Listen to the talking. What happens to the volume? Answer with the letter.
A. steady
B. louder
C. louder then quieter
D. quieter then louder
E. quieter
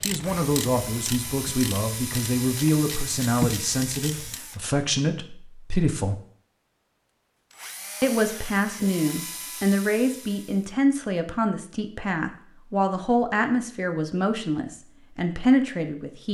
A.